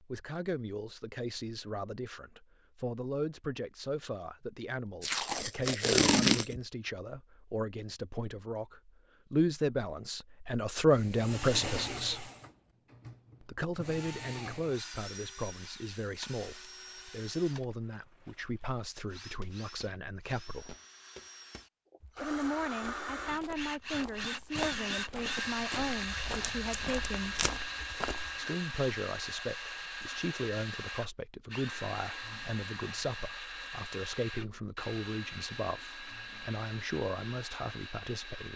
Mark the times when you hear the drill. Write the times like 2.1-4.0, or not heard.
10.9-38.5.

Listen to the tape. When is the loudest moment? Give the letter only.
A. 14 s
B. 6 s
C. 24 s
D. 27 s
B.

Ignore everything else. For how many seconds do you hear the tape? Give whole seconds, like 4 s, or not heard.
3 s.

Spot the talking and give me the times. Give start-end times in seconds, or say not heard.
0.0-12.3, 13.4-20.8, 22.2-27.4, 28.4-38.5.